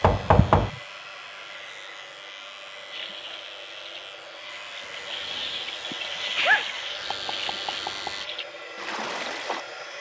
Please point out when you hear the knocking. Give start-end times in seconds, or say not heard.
0.0-0.7, 7.1-8.2.